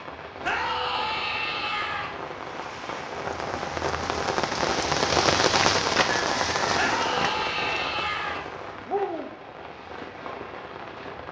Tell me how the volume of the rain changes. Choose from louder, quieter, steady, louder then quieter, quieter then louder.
louder then quieter.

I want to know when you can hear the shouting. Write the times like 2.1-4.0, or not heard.
0.4-2.1, 6.8-8.4.